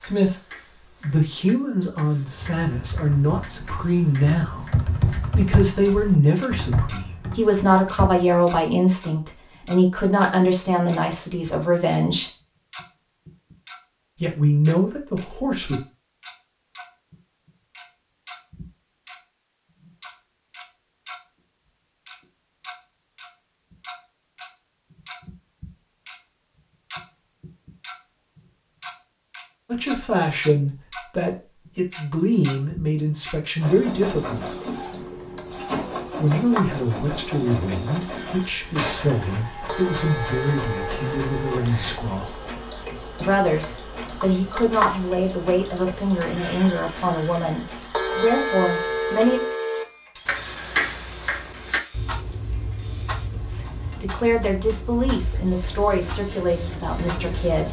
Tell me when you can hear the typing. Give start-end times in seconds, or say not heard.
2.3-8.4.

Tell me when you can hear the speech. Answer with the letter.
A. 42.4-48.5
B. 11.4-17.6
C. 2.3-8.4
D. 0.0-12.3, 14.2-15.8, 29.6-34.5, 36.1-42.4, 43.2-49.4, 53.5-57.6
D.